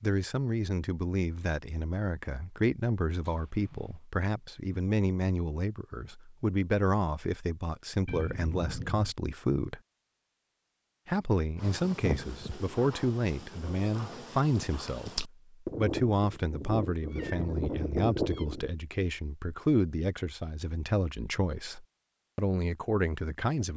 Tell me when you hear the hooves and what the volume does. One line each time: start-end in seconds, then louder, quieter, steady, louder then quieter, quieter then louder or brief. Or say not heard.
11.6-18.7 quieter then louder.